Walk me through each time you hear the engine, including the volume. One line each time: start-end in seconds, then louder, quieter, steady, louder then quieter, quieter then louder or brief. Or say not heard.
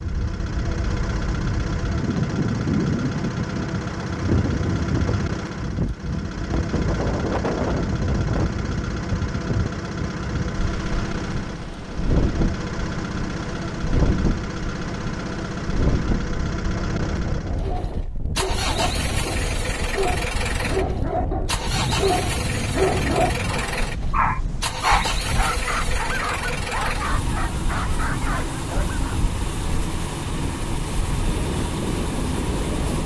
0.0-33.0 steady.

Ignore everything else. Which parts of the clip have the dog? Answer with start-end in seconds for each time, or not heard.
17.6-29.1.